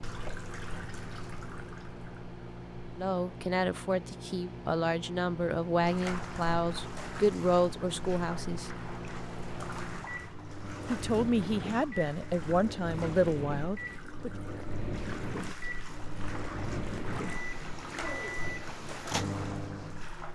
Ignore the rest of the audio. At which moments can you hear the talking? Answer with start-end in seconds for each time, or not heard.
3.0-8.7, 10.8-14.3.